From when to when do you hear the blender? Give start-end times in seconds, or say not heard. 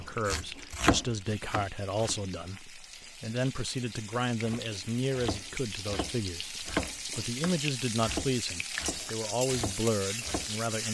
not heard.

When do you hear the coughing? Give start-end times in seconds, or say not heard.
not heard.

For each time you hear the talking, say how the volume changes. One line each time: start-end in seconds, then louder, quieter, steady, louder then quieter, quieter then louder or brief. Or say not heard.
0.0-10.8 steady.